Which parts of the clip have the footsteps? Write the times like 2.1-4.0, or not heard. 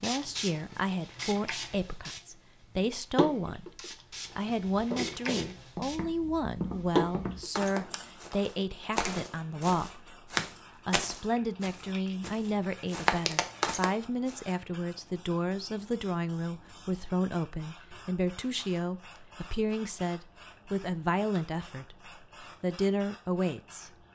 4.7-14.3.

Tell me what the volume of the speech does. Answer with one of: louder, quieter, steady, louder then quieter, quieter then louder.
steady.